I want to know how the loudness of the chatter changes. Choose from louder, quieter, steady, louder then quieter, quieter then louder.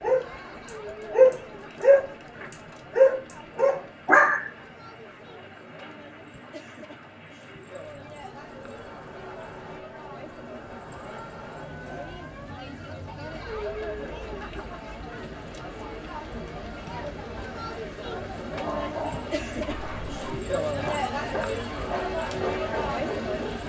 louder.